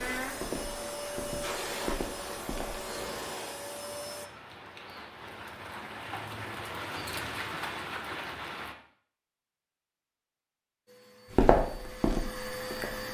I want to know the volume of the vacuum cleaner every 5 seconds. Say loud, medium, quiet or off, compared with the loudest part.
loud, off, loud.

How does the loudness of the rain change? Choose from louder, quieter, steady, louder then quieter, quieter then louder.
louder.